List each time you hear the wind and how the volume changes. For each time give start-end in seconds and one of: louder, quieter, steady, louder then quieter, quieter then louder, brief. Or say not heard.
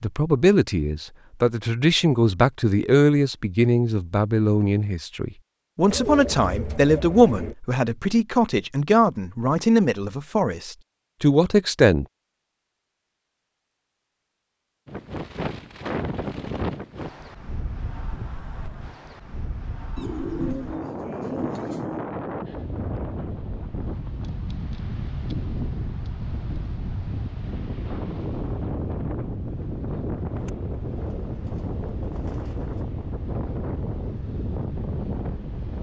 14.8-35.7 steady.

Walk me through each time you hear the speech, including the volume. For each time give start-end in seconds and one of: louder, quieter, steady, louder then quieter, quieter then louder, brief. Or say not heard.
0.0-12.1 steady.